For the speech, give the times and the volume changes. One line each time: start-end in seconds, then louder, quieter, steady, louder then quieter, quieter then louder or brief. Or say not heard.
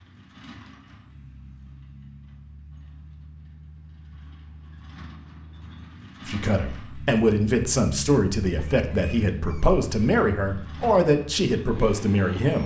6.2-12.6 steady.